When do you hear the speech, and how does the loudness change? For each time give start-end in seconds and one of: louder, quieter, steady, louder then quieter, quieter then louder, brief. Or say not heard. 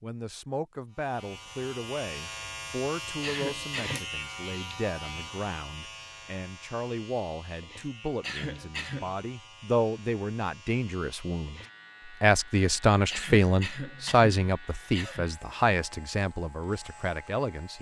0.0-17.7 louder.